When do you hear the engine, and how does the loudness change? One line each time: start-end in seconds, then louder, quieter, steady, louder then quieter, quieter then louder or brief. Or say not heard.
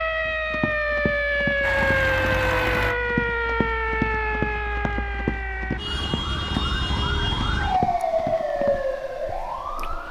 1.6-6.0 quieter.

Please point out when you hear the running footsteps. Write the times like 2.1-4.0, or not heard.
0.2-8.8.